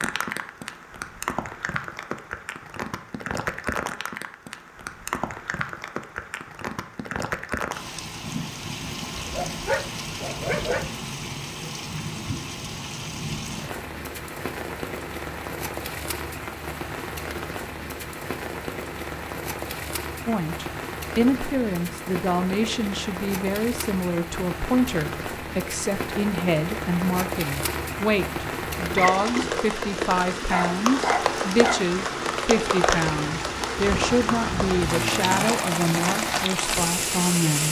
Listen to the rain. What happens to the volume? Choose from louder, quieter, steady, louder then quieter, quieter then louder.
louder.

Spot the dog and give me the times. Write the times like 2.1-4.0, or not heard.
9.2-10.9, 29.9-31.9.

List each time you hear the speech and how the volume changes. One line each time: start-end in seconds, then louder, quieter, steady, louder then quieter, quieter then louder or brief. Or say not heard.
20.2-37.6 steady.